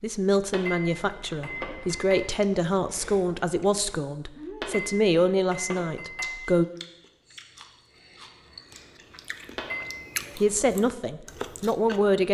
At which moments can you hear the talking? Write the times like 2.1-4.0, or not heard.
0.0-6.7, 10.3-12.3.